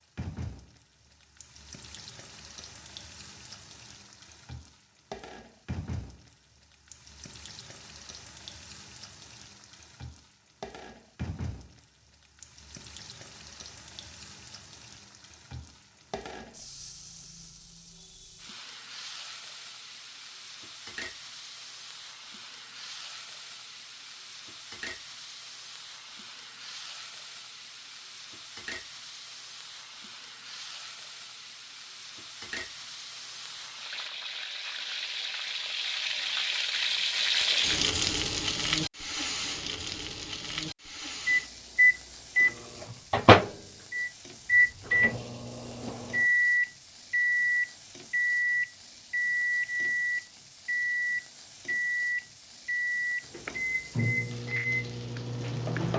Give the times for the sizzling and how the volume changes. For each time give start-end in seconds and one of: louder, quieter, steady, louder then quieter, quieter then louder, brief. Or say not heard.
0.0-55.9 louder then quieter.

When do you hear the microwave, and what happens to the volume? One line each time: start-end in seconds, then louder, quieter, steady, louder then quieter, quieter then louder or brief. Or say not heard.
41.2-55.9 quieter.